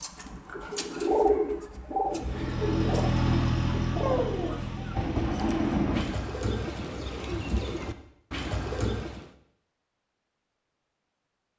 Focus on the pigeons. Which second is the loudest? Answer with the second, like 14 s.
1 s.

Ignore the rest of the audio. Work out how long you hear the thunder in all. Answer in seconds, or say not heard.
2 s.